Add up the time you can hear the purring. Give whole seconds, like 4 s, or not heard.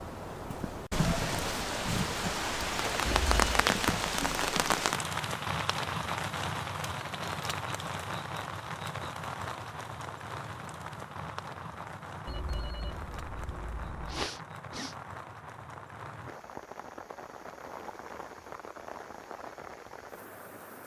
not heard.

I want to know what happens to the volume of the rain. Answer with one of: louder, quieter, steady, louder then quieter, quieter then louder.
quieter.